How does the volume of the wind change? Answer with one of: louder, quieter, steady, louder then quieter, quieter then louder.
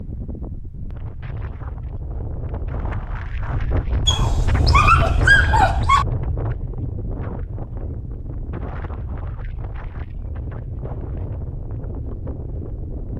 louder then quieter.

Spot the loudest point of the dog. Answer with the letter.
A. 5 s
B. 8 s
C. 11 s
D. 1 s
A.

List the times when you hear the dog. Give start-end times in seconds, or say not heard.
4.0-6.0.